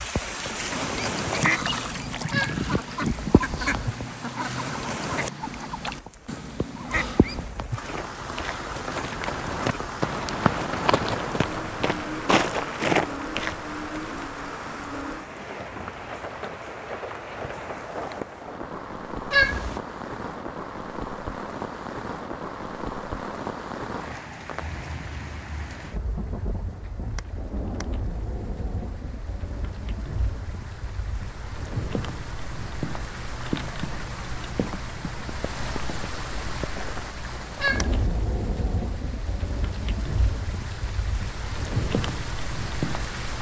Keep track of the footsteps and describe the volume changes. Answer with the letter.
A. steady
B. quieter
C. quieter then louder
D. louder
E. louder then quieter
D.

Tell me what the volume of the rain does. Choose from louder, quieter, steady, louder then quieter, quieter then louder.
steady.